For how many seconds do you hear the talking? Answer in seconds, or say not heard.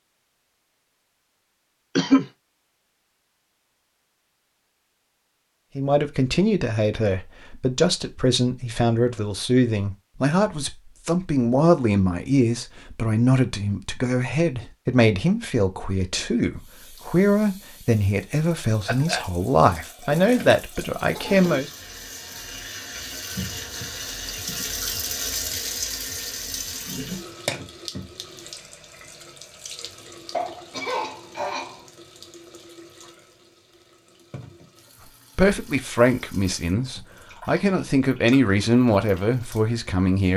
21 s.